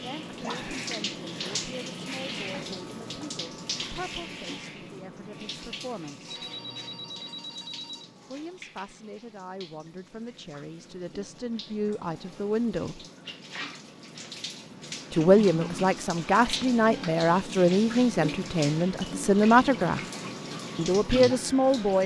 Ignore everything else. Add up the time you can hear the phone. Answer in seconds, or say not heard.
2 s.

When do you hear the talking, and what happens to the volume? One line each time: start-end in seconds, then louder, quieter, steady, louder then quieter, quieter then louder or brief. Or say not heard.
0.0-6.3 steady
8.2-13.0 louder
15.1-20.0 louder
20.8-22.0 brief.